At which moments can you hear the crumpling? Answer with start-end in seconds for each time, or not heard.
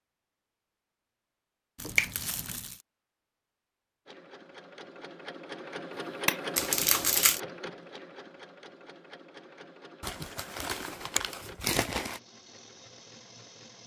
1.8-2.8, 6.5-7.4, 10.0-12.2.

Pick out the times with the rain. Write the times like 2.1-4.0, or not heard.
not heard.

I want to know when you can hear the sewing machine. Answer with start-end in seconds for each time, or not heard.
4.0-13.8.